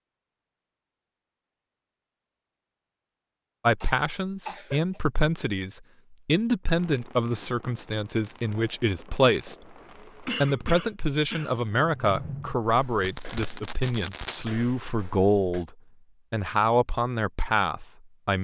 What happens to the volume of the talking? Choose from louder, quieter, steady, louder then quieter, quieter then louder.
steady.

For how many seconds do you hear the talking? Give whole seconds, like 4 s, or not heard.
14 s.